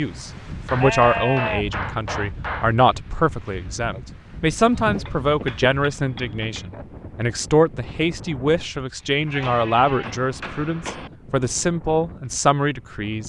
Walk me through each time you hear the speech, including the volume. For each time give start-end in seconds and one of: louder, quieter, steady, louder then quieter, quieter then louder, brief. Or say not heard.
0.0-13.2 steady.